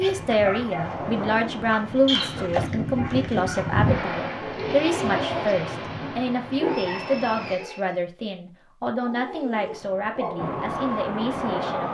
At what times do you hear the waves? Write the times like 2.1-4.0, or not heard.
0.0-7.5.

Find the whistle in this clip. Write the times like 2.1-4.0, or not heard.
2.0-2.5, 6.5-8.0.